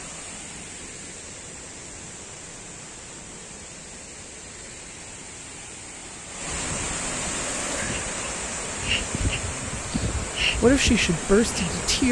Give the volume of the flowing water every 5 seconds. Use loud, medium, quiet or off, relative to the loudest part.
medium, loud, loud.